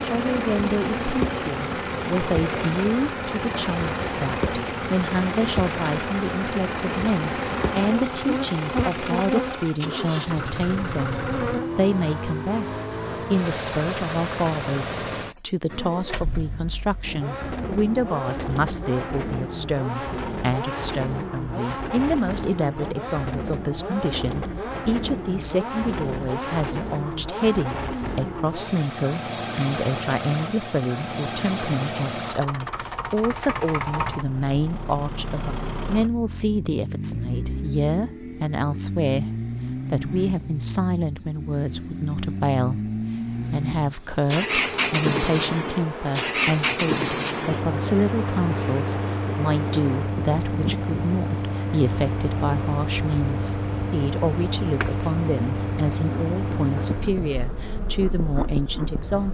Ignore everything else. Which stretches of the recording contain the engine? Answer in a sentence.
The engine can be heard from 0.0 to 59.3 s.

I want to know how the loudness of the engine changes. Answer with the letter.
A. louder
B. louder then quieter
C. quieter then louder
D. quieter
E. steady
E.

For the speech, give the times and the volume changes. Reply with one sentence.
You can hear the speech from 0.0 to 59.3 s, at a steady volume.